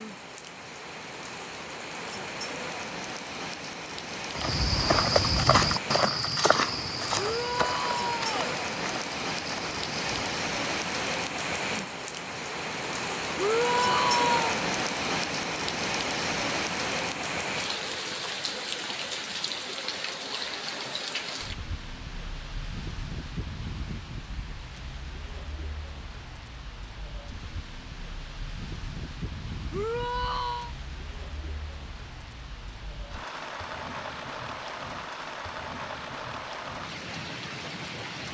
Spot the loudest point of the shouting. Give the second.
14 s.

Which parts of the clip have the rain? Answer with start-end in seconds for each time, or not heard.
0.0-38.3.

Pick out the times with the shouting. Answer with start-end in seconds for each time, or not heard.
7.2-8.6, 13.3-14.6, 29.7-30.8.